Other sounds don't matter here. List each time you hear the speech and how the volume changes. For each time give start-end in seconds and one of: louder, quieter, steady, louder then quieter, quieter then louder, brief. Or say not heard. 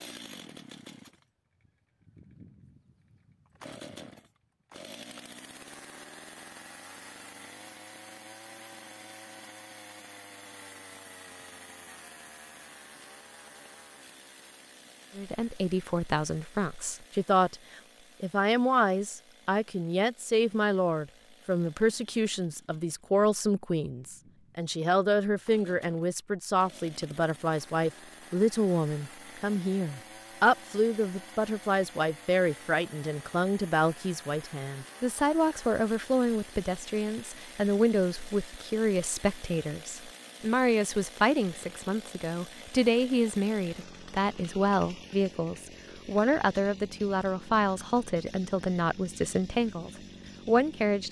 15.2-51.0 steady.